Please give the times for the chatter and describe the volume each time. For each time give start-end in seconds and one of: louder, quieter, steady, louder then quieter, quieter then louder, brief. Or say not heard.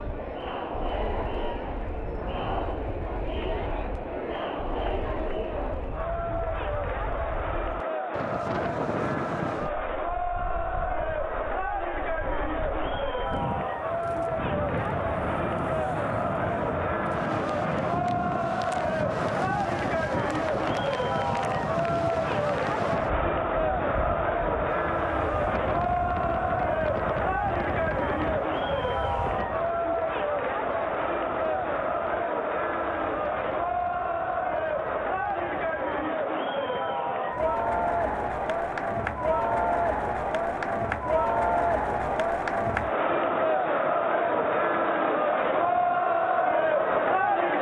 0.0-47.5 louder.